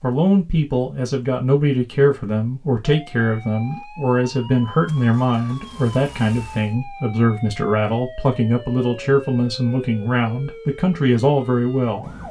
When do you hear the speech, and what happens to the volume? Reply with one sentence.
You can hear the speech from 0.0 to 12.1 s, at a steady volume.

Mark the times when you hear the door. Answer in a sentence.
The door can't be heard in this clip.